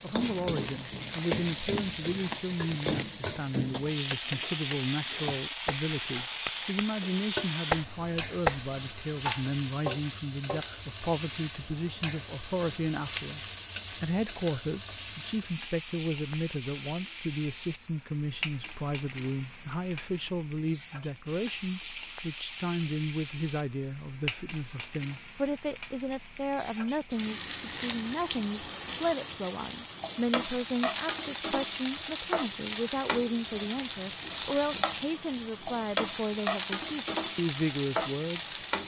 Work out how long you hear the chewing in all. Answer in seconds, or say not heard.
not heard.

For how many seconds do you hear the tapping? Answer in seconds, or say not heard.
9 s.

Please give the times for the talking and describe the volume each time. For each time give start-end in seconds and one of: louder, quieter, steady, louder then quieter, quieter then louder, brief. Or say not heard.
0.0-38.5 steady.